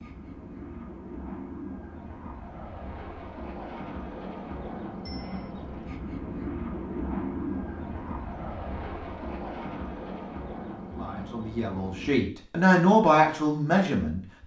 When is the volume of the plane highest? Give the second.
7 s.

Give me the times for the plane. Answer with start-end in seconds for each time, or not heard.
0.0-12.2.